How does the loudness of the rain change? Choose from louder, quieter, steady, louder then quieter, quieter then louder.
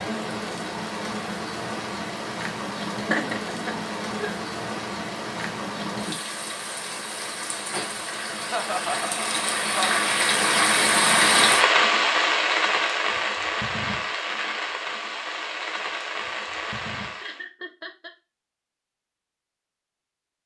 louder then quieter.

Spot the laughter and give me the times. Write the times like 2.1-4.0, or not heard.
3.1-4.3, 8.3-10.0, 17.1-18.1.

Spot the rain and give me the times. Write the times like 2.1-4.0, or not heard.
0.0-17.4.